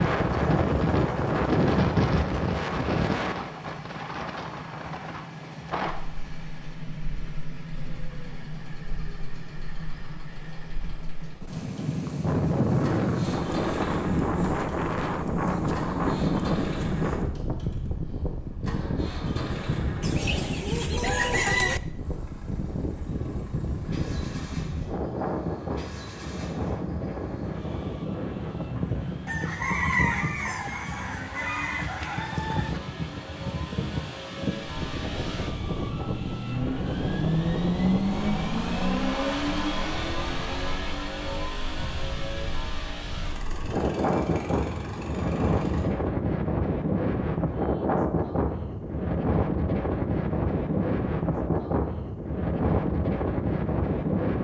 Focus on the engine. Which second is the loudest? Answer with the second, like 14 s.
38 s.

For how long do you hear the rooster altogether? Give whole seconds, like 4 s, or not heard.
5 s.